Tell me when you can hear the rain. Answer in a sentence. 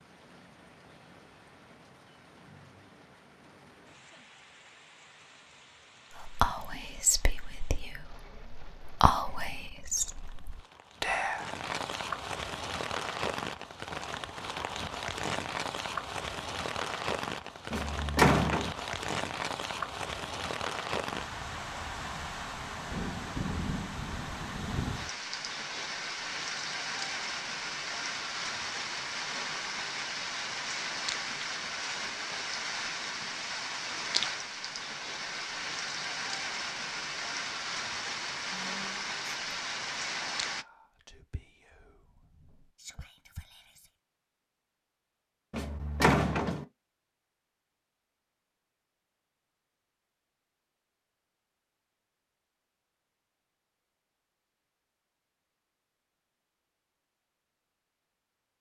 The rain can be heard from 0.0 to 40.6 s.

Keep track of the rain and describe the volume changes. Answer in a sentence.
The volume of the rain goes up.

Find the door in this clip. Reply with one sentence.
You can hear the door from 17.7 to 18.7 s and from 45.5 to 46.6 s.